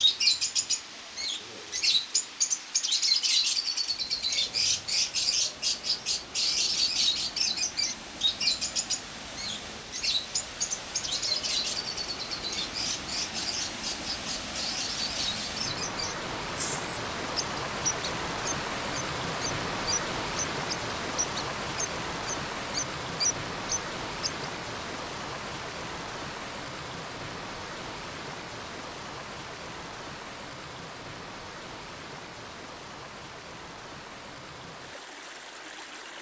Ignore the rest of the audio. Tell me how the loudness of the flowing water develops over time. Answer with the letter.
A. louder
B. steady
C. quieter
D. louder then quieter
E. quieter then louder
D.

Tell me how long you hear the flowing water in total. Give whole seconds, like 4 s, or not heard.
36 s.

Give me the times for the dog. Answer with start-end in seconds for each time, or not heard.
not heard.